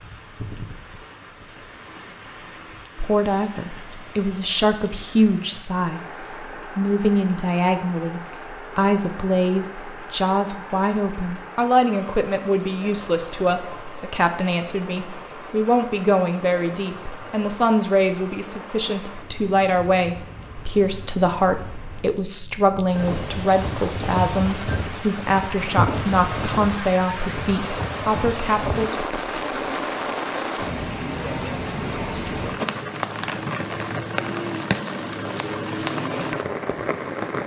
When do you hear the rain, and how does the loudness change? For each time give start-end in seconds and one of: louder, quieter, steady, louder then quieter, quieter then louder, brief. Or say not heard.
0.0-37.4 louder.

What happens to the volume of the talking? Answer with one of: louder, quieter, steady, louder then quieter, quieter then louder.
steady.